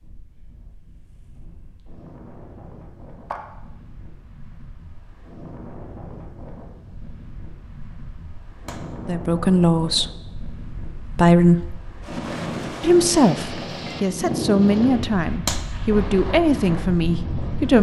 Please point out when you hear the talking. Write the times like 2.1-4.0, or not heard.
9.1-11.8, 12.8-17.7.